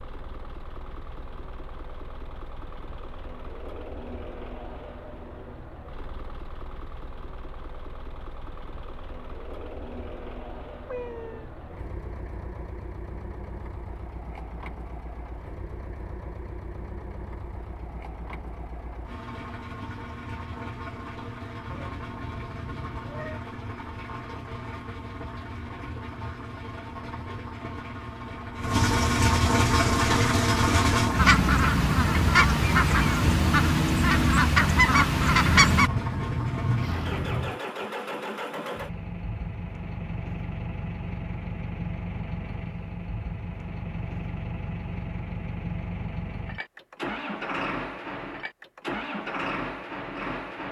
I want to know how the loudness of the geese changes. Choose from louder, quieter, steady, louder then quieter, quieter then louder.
steady.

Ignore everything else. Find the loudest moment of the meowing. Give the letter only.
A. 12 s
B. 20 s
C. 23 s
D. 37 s
D.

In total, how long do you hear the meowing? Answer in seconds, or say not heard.
4 s.